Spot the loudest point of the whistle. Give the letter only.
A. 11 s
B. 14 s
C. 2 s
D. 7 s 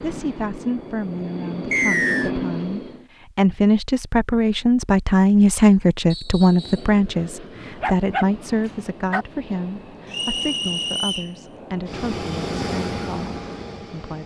C.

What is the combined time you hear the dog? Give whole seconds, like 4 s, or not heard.
2 s.